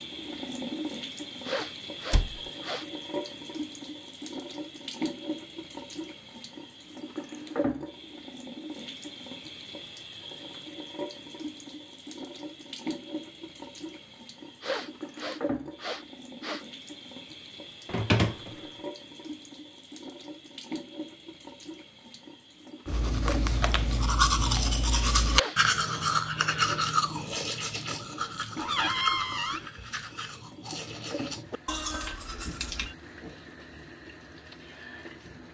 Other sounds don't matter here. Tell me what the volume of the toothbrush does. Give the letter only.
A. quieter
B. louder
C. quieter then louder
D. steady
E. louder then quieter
A.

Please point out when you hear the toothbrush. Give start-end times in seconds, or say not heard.
22.9-33.0.